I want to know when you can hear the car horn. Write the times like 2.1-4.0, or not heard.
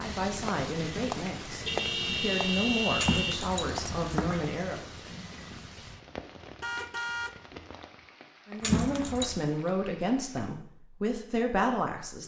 1.6-3.5, 6.6-7.3.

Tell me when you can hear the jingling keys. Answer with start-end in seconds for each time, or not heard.
3.0-4.5, 8.6-9.4.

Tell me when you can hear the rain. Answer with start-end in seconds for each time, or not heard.
0.0-10.6.